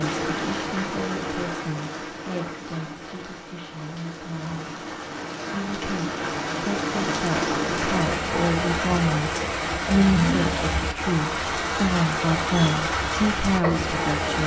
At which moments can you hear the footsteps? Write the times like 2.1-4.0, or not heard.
not heard.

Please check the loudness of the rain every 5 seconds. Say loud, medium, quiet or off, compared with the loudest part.
medium, loud, loud.